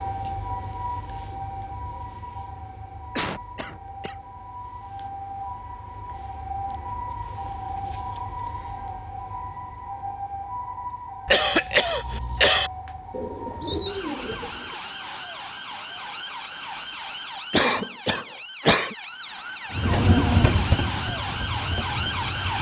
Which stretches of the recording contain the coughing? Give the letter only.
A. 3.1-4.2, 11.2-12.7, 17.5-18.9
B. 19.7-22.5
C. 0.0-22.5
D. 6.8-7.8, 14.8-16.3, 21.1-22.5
A.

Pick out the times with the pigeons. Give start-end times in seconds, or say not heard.
13.1-14.8.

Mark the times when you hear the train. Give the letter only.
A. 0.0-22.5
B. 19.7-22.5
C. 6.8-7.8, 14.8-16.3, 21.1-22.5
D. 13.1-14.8
B.